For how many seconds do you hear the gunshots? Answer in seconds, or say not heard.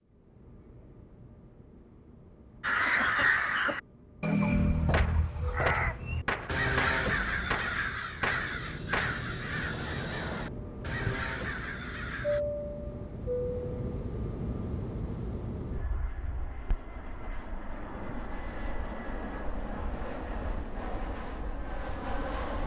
4 s.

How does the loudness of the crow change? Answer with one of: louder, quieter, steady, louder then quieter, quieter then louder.
quieter.